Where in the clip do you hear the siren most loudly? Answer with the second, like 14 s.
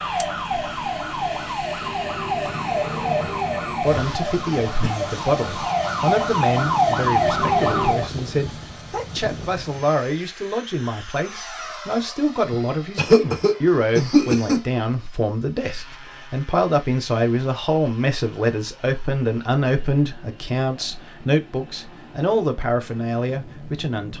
7 s.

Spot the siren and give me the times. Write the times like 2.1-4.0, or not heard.
0.0-8.1.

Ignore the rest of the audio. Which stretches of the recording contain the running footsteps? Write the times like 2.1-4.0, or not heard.
not heard.